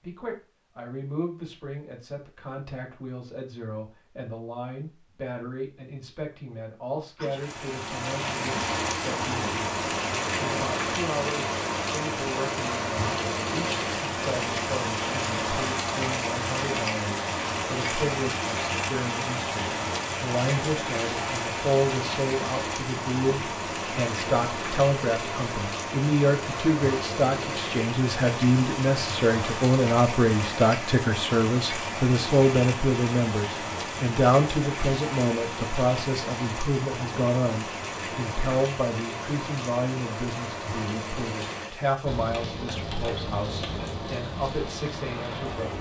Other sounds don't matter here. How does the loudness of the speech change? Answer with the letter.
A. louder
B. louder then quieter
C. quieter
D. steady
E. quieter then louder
B.